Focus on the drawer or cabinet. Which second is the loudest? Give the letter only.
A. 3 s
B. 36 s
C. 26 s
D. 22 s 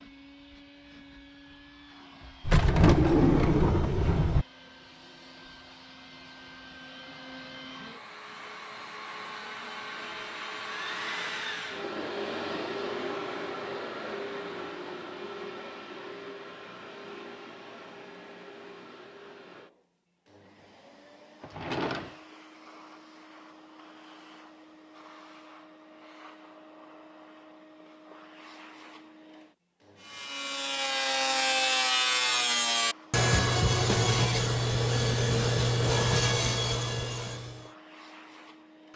A.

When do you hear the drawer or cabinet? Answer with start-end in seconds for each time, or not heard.
2.5-4.5, 21.4-22.1, 35.3-36.2.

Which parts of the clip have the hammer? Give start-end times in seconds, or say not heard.
not heard.